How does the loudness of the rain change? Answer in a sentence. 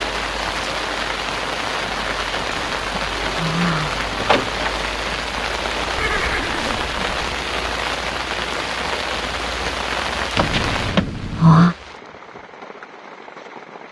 The loudness of the rain goes down.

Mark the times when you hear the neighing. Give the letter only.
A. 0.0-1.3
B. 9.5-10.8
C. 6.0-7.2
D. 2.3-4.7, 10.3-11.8
C.